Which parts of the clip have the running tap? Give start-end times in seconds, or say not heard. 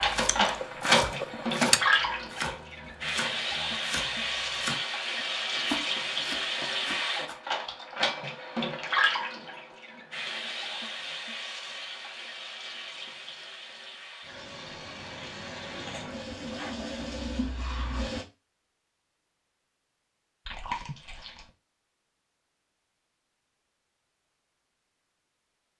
0.0-18.2.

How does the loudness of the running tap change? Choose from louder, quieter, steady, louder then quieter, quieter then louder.
quieter.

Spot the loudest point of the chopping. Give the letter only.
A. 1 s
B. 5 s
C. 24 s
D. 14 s
A.